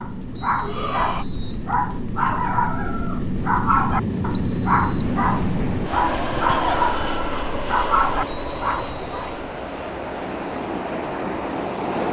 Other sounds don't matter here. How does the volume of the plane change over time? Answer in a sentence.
The loudness of the plane goes up, then down.